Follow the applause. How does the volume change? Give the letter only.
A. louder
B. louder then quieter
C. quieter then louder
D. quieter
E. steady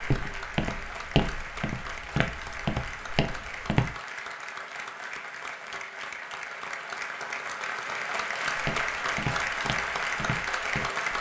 A.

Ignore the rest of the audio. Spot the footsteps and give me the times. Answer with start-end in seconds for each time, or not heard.
0.0-4.0, 8.6-10.9.